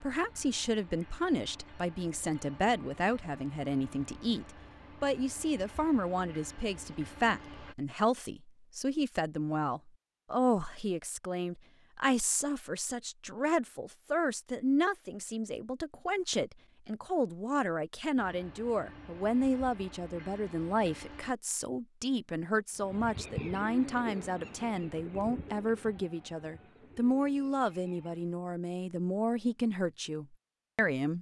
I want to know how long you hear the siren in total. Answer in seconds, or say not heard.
not heard.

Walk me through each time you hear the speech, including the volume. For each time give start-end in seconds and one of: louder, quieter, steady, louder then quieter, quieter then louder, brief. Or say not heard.
0.0-31.1 steady.